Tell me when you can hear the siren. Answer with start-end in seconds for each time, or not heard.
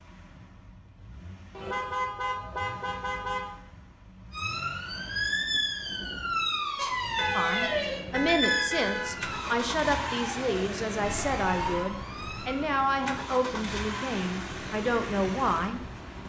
4.3-12.7.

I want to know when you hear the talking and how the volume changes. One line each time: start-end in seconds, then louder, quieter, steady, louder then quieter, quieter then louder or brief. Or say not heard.
7.3-16.2 steady.